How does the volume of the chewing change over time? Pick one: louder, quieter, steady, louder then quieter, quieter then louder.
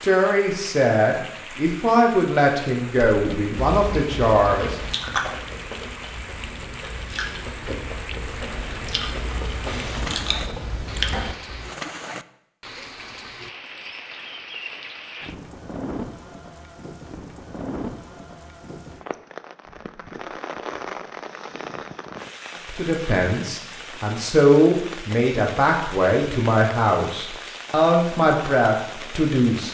quieter then louder.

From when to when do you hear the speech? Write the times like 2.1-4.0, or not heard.
0.0-4.8, 22.6-29.6.